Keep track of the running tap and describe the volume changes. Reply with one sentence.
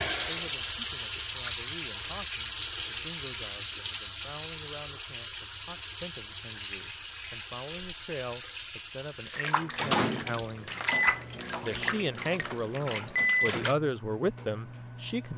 The volume of the running tap goes down.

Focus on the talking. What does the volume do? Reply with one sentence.
The loudness of the talking goes up.